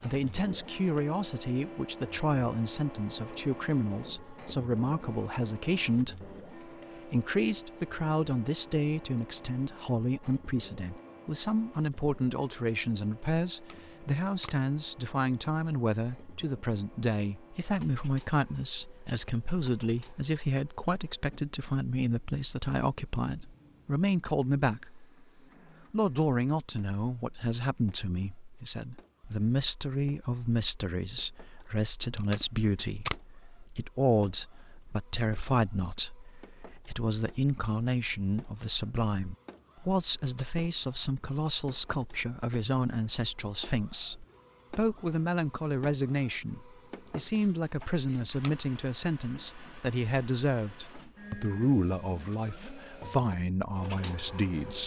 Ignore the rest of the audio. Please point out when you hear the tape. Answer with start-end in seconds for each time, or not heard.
13.5-14.7, 32.0-33.2, 48.2-48.9.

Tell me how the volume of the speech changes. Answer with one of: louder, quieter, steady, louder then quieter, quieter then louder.
steady.